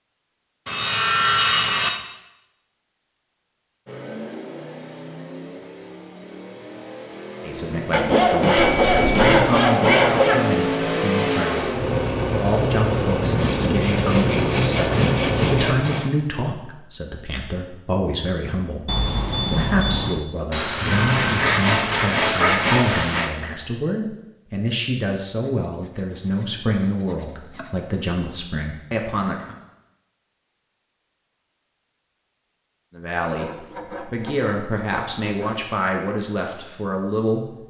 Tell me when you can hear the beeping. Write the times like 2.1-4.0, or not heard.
8.6-9.3, 18.9-20.2.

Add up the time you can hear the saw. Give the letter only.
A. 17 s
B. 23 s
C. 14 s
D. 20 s
C.